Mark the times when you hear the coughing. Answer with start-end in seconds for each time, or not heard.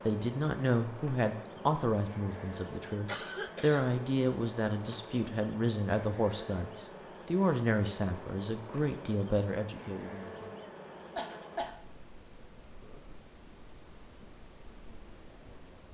3.0-3.9, 11.2-11.8.